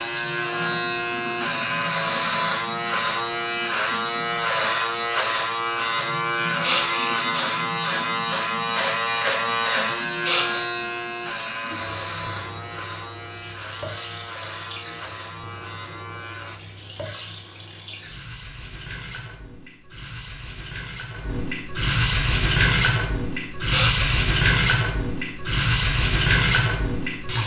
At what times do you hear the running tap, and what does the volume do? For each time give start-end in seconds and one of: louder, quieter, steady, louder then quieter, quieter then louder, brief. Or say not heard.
0.0-27.4 louder.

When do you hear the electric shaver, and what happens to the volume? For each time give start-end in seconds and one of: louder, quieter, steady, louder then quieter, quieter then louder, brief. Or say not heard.
0.0-16.6 quieter.